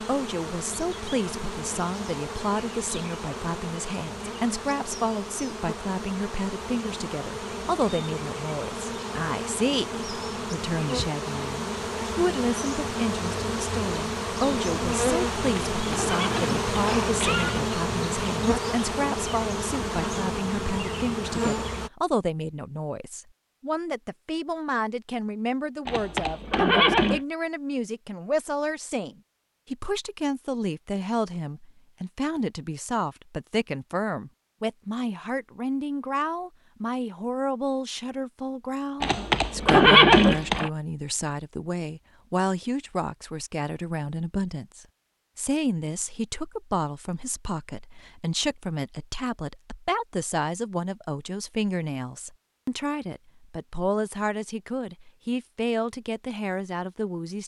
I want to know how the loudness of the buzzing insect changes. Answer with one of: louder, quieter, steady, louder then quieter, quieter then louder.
louder.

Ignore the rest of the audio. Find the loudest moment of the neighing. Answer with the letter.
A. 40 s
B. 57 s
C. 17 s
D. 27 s
A.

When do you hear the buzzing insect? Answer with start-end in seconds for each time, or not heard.
0.0-21.9.